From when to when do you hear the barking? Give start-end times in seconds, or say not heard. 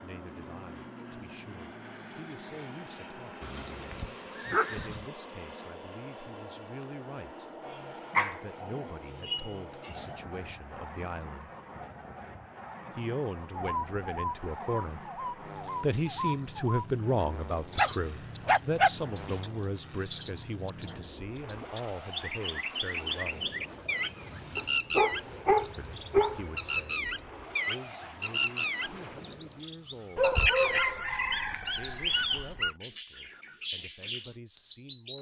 3.4-5.0, 7.6-10.2, 17.8-19.4, 24.6-26.4, 30.1-32.8.